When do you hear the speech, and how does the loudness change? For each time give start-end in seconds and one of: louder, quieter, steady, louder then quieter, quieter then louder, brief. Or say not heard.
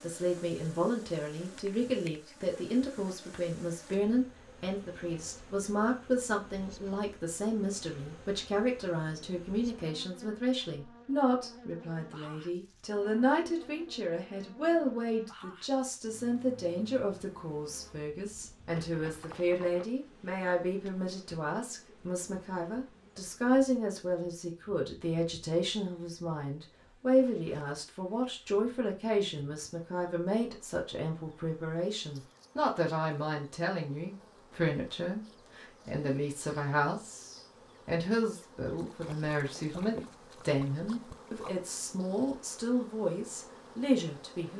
0.0-44.5 steady.